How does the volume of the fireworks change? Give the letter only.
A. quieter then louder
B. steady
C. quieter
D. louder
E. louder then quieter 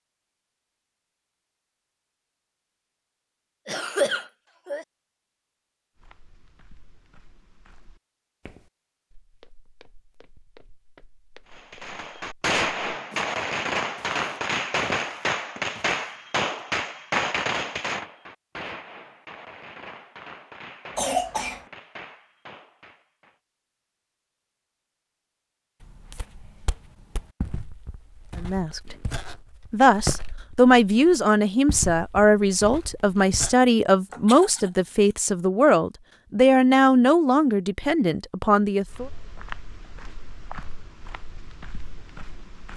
C.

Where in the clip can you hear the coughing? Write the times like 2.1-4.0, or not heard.
3.6-4.8, 20.9-21.6, 34.1-35.1.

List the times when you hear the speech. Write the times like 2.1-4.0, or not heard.
28.4-28.9, 29.7-39.1.